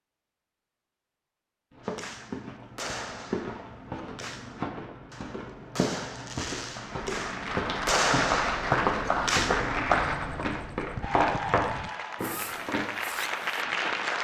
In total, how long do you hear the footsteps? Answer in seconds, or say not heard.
11 s.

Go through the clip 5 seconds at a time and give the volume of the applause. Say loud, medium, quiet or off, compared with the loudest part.
off, loud, loud.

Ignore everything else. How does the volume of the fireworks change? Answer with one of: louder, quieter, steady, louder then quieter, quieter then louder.
louder then quieter.